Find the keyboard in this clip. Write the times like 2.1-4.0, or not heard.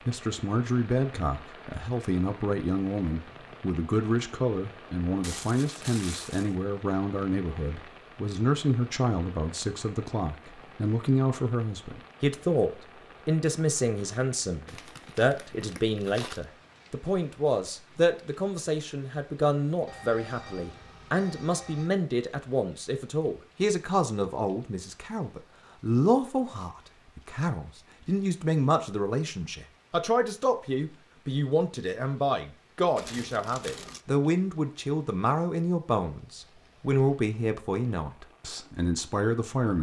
not heard.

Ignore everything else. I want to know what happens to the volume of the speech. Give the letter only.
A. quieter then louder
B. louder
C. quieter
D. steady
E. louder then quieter
D.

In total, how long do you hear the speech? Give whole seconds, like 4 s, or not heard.
40 s.